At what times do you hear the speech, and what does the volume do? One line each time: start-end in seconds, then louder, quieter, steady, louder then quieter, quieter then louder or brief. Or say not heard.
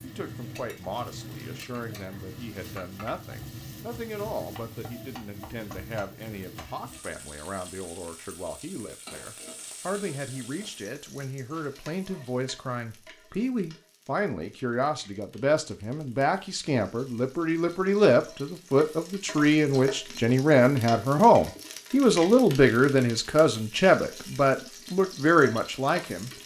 0.0-26.3 louder.